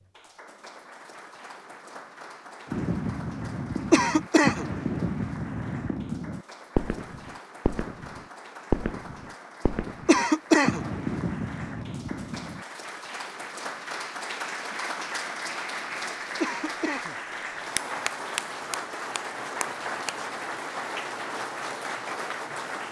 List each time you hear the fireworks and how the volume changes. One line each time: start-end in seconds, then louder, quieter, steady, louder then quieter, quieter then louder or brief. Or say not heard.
2.6-12.7 steady.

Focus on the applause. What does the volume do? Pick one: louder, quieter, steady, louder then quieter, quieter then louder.
louder.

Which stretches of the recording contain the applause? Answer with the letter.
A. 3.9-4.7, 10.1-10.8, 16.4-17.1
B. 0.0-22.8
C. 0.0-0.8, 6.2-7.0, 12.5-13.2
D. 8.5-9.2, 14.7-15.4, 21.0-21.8
B.